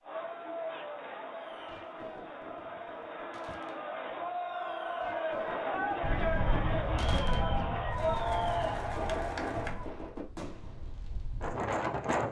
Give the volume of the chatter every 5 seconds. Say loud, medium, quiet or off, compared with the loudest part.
medium, loud, off.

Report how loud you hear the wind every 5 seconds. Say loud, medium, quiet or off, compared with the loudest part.
off, loud, loud.